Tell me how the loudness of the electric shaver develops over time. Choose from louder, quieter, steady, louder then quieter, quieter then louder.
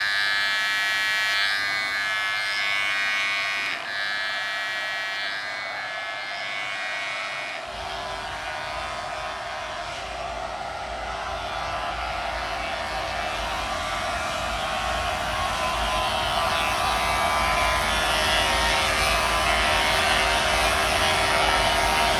quieter then louder.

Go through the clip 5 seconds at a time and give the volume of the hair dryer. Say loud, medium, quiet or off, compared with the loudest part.
quiet, medium, medium, loud, loud.